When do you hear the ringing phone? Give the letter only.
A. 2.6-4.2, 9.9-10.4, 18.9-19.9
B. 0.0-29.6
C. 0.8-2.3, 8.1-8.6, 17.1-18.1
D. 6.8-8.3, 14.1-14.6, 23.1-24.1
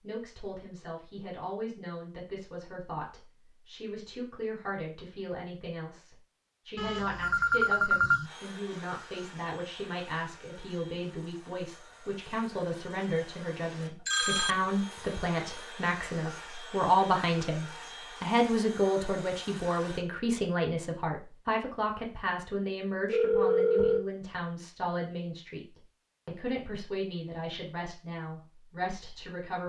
D.